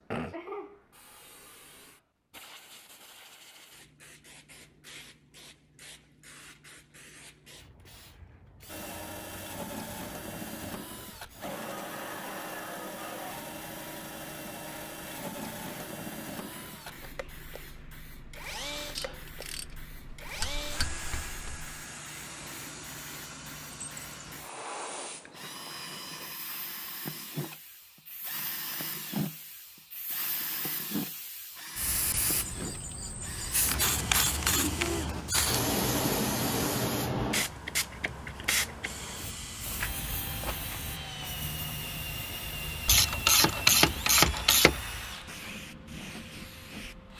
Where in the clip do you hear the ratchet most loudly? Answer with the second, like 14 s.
44 s.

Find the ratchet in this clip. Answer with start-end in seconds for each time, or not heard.
18.9-21.7, 42.9-44.9.